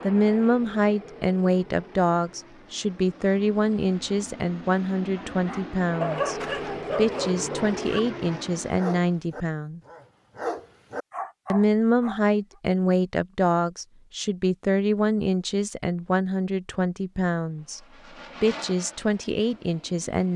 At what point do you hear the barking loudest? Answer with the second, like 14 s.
6 s.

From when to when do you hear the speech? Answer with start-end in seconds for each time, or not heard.
0.0-9.8, 11.5-17.8, 18.4-20.3.